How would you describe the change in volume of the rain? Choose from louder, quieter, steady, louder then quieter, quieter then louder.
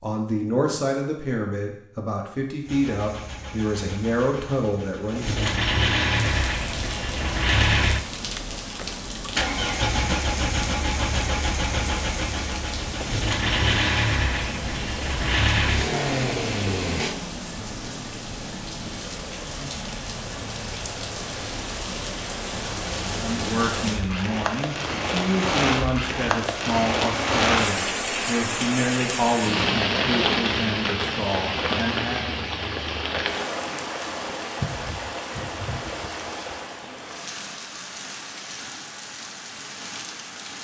louder then quieter.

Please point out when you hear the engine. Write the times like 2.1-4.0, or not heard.
2.6-17.1.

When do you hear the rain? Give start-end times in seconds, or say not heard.
6.1-40.5.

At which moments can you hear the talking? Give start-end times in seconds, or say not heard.
0.0-5.5, 23.1-32.4.